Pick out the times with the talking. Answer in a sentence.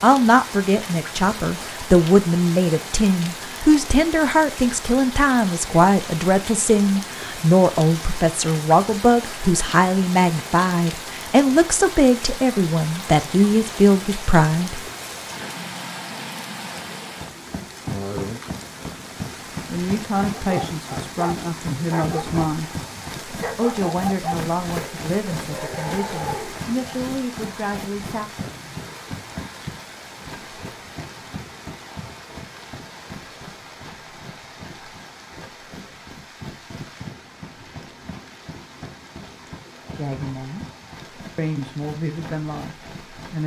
You can hear the talking from 0.0 to 14.8 s, from 19.6 to 22.7 s, from 23.6 to 28.3 s, from 39.9 to 40.6 s and from 41.4 to 43.4 s.